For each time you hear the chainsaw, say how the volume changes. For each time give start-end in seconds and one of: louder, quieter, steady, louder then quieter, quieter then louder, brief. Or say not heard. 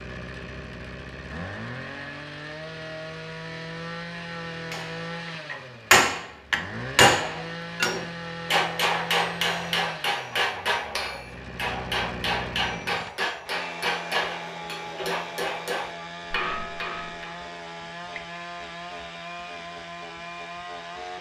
0.0-21.1 steady.